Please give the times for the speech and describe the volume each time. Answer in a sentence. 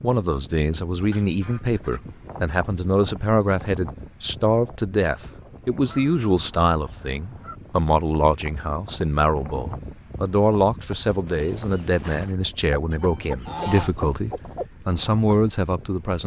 You can hear the speech from 0.0 to 16.2 s, at a steady volume.